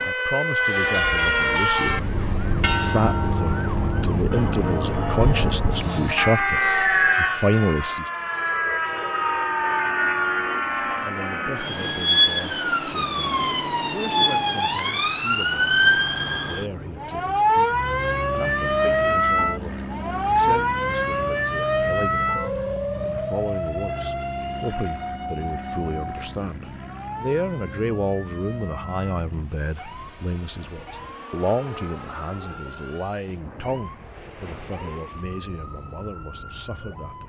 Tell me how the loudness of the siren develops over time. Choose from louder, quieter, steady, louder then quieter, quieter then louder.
quieter.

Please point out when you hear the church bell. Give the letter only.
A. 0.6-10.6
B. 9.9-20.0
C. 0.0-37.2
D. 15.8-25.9
A.